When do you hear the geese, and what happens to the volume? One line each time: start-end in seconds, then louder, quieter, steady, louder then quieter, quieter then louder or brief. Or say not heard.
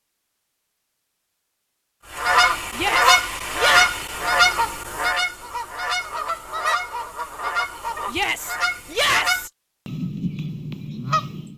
2.1-11.5 quieter.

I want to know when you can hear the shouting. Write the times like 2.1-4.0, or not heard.
2.8-3.9, 8.1-9.5.